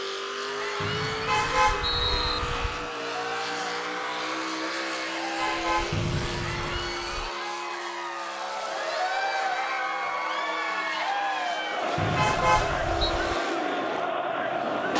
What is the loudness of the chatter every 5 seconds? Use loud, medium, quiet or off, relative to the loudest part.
medium, loud, loud.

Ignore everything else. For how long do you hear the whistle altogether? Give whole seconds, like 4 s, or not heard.
4 s.